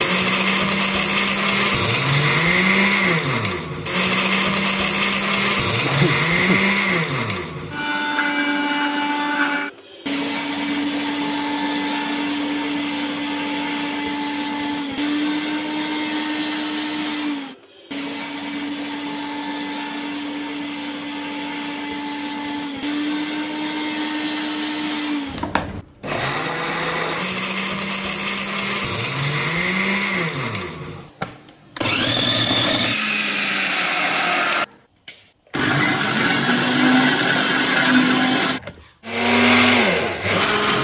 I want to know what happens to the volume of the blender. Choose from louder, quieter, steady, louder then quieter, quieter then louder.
quieter then louder.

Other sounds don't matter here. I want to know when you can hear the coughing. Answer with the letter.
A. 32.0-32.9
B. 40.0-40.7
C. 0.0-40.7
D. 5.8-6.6
D.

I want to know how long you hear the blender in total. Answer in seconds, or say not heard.
41 s.